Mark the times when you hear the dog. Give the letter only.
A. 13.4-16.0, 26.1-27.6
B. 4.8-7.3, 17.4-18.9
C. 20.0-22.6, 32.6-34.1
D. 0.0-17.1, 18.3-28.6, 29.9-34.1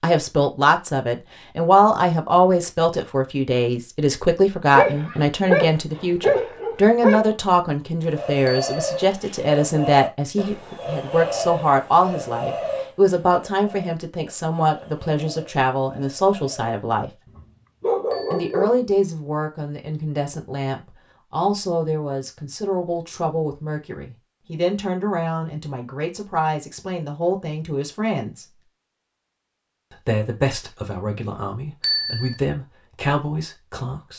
B.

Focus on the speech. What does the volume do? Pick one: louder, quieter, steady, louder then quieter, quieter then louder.
quieter.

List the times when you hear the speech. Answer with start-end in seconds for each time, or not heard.
0.0-17.1, 18.3-28.6, 29.9-34.1.